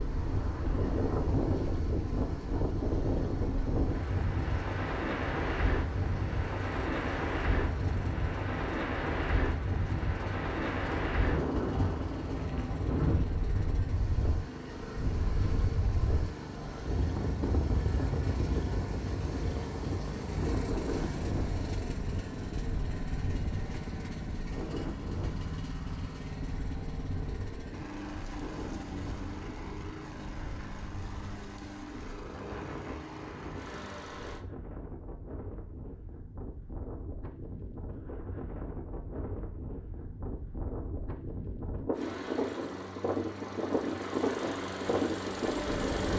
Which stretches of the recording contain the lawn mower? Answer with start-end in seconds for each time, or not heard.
0.0-34.5, 41.9-46.1.